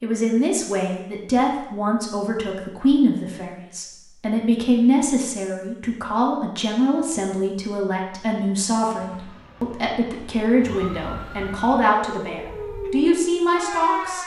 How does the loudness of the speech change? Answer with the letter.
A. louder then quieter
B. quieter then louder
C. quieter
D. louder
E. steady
E.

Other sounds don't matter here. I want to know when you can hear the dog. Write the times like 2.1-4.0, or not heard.
not heard.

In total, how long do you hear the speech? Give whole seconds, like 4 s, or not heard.
14 s.